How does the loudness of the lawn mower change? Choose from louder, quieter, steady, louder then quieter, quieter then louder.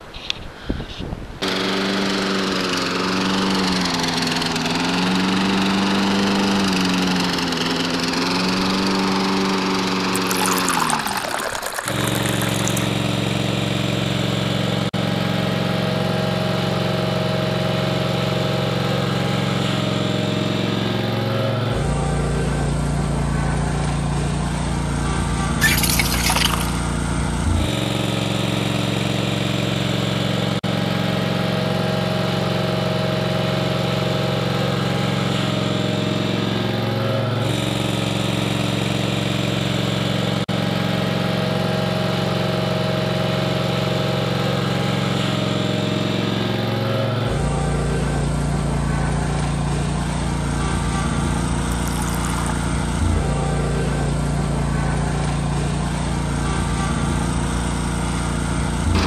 steady.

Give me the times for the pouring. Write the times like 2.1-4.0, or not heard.
10.2-12.9, 25.6-26.8, 51.9-52.6.